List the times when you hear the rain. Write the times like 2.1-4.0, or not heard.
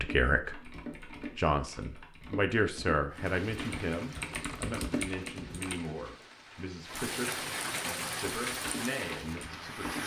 3.1-10.0.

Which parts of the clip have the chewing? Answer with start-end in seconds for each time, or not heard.
not heard.